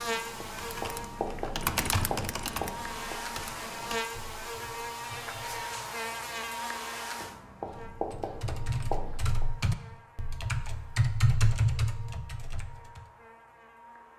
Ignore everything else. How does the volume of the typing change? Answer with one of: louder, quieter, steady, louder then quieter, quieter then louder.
quieter then louder.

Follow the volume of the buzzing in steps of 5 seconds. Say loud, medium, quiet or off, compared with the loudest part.
loud, loud, quiet.